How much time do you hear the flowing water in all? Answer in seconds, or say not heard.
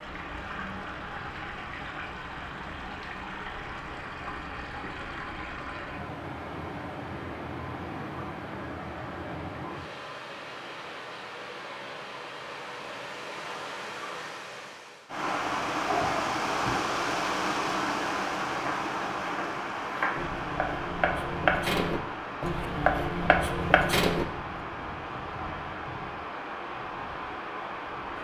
28 s.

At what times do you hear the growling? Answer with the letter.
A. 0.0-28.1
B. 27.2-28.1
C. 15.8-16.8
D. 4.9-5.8
C.